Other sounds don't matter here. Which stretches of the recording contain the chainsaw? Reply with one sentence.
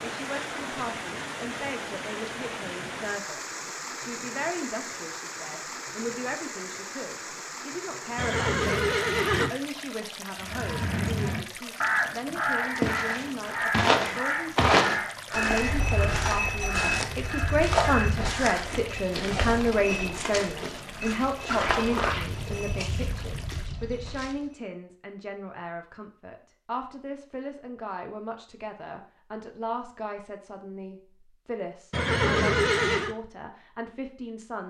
The chainsaw can't be heard in this clip.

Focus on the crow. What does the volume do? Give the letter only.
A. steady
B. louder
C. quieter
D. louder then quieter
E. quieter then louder
C.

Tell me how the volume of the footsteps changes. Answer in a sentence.
The volume of the footsteps goes down.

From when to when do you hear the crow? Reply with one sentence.
The crow can be heard from 10.4 to 18.6 s.